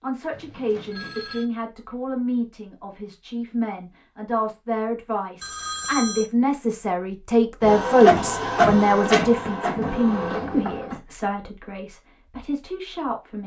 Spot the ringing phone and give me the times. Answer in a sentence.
The ringing phone can be heard from 0.3 to 1.5 s, from 5.4 to 6.3 s and from 10.1 to 10.8 s.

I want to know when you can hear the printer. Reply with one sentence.
You can hear the printer from 7.6 to 11.0 s.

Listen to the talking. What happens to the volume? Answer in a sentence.
The loudness of the talking goes up, then down.